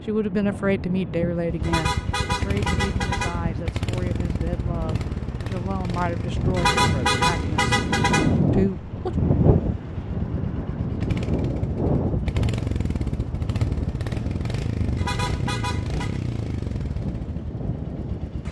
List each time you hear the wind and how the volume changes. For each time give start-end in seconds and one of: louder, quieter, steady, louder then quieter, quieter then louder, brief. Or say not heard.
0.0-18.4 louder then quieter.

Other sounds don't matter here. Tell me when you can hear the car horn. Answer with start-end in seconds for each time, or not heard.
1.6-3.6, 6.5-8.4, 14.9-16.2.